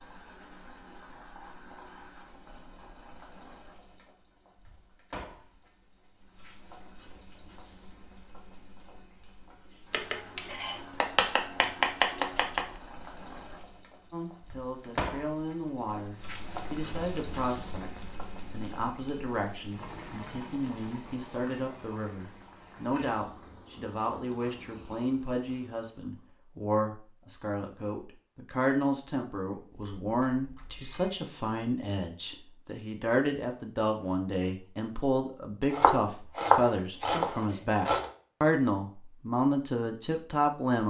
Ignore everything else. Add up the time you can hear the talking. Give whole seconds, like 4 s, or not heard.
27 s.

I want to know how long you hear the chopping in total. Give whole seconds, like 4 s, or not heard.
5 s.